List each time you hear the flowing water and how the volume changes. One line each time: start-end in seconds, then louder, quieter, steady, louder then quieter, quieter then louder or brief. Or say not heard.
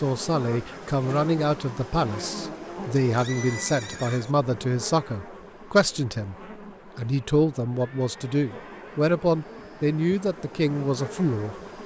not heard.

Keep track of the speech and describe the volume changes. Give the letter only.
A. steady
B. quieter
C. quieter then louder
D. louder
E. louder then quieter
A.